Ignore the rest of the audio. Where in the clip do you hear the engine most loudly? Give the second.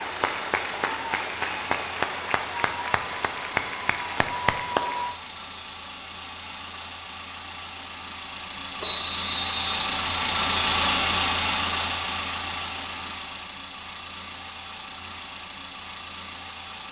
11 s.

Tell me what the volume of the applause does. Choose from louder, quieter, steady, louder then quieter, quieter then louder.
steady.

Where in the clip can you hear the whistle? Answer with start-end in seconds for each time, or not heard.
8.8-10.0.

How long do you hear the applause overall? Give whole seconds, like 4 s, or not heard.
5 s.